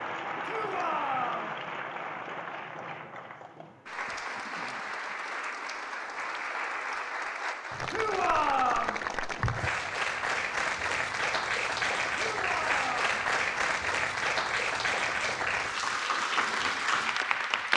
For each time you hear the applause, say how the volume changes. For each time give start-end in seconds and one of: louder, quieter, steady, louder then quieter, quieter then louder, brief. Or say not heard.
0.0-17.7 louder.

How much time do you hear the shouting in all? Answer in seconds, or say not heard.
3 s.